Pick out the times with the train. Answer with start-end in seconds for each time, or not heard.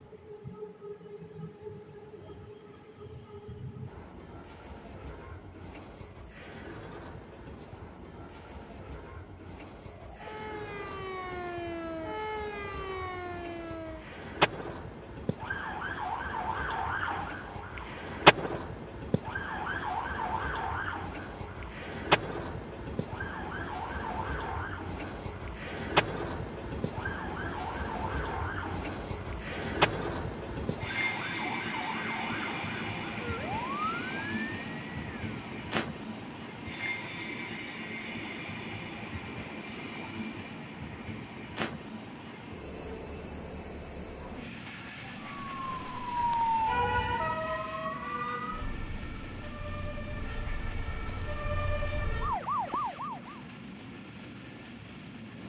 0.0-55.4.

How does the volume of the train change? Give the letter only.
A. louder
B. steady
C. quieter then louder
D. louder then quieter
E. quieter
D.